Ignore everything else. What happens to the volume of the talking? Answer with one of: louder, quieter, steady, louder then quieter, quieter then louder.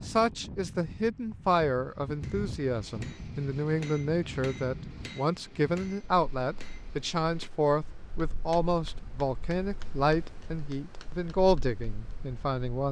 steady.